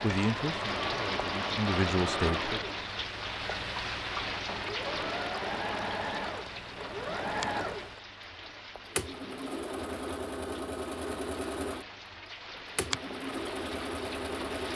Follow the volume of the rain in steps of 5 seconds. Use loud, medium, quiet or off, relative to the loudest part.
loud, medium, medium.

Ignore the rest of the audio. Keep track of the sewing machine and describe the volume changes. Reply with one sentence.
The loudness of the sewing machine stays about the same.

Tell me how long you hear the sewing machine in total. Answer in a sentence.
The sewing machine can be heard for 15 seconds in total.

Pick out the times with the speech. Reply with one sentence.
The speech can be heard from 0.0 to 2.6 s.